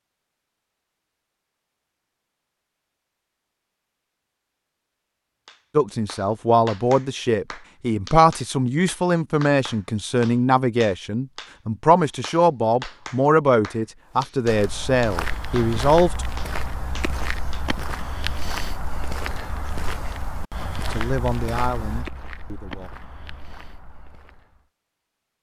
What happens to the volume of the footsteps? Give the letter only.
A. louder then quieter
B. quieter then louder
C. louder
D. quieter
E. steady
D.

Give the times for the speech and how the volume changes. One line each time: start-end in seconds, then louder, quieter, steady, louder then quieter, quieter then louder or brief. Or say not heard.
5.8-16.2 steady
20.9-22.9 brief.